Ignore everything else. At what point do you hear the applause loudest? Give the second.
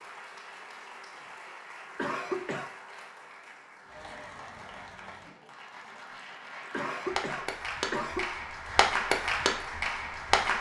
9 s.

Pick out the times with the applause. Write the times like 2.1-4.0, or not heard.
0.0-10.5.